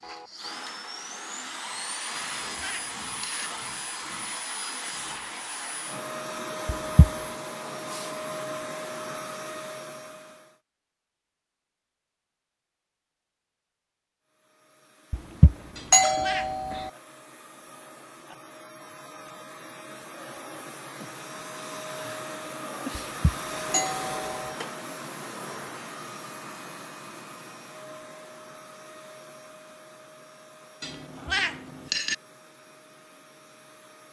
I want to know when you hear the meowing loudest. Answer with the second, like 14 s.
31 s.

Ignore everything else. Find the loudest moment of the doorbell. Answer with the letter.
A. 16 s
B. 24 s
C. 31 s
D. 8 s
A.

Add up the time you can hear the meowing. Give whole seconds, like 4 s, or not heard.
4 s.